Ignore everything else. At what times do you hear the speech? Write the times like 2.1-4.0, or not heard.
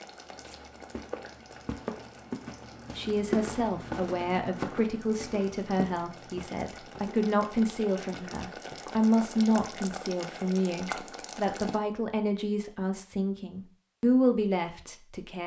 3.0-15.4.